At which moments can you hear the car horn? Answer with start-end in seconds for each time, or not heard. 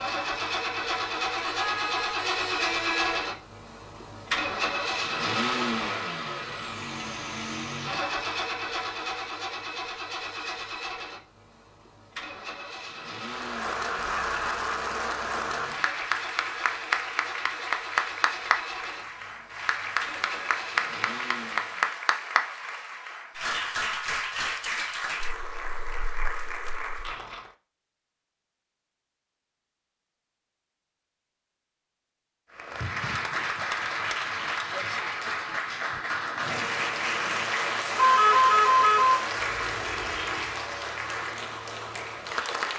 1.4-3.3, 38.0-40.5.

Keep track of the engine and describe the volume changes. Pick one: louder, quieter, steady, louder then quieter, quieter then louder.
quieter.